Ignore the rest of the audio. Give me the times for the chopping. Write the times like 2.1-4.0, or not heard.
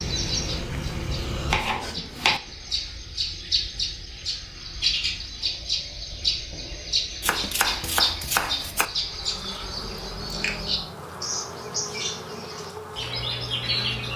1.5-2.4, 7.2-8.8.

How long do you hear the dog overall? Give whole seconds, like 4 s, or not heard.
not heard.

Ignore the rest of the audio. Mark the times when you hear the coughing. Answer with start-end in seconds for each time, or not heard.
not heard.